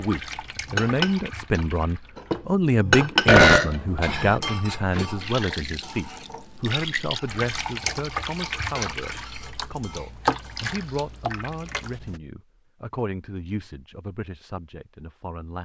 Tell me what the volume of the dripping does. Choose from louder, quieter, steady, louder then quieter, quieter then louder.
louder.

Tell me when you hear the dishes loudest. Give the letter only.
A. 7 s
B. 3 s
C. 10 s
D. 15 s
B.